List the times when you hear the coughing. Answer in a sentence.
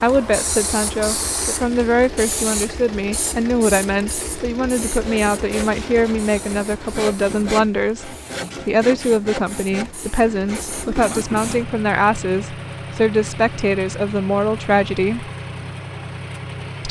The coughing can be heard from 10.7 to 11.6 s.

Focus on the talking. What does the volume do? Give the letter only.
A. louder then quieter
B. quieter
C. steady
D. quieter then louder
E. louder
C.